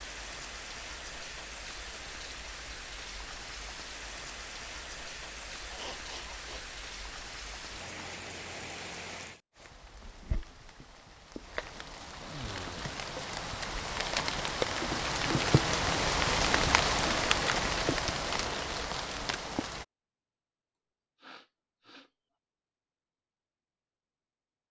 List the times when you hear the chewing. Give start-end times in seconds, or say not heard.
not heard.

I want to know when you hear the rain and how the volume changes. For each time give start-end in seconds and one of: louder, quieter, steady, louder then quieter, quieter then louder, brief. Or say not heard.
0.0-19.9 louder.